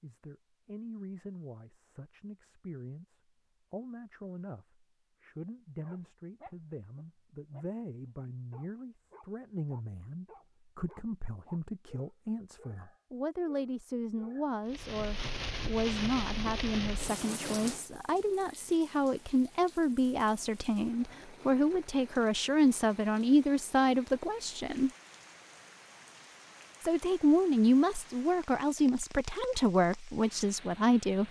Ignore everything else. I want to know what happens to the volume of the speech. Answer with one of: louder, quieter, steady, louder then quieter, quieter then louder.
louder.